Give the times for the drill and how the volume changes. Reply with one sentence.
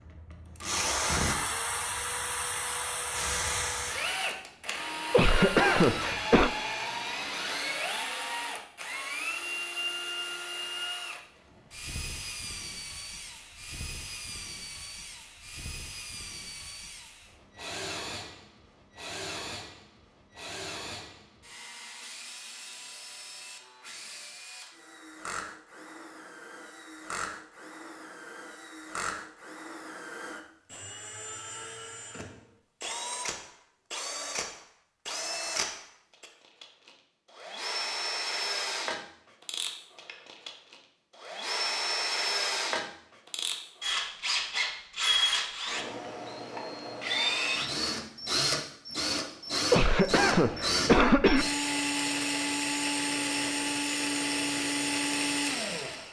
The drill can be heard from 0.0 to 56.0 s, getting quieter then louder.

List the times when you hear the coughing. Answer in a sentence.
You can hear the coughing from 5.1 to 6.5 s and from 49.7 to 51.5 s.